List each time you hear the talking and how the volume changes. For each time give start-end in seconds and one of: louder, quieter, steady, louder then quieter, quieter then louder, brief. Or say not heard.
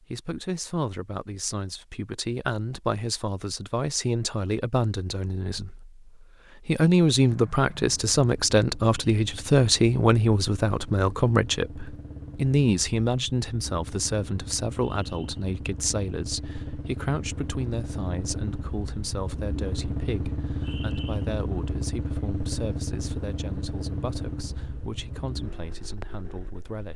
0.0-26.9 louder then quieter.